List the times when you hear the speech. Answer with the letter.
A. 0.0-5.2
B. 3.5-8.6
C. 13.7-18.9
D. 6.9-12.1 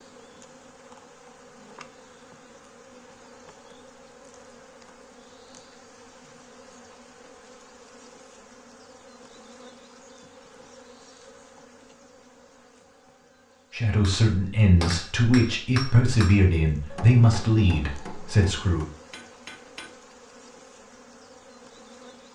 C.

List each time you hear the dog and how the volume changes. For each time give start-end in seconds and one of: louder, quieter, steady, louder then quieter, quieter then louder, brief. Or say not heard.
not heard.